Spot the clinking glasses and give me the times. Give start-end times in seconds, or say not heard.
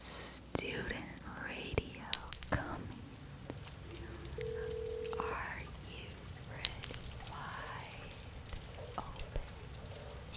2.1-2.7, 6.7-7.2.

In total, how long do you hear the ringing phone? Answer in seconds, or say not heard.
2 s.